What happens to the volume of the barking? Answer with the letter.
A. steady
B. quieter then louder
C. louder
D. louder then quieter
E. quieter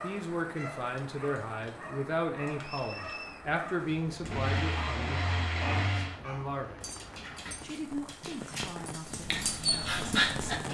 C.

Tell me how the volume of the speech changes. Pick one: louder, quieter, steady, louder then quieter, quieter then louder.
quieter.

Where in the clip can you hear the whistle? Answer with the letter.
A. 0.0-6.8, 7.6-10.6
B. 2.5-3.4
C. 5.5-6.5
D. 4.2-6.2
B.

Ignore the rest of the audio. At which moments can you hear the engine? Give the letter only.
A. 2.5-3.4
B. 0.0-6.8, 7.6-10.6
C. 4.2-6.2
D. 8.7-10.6
C.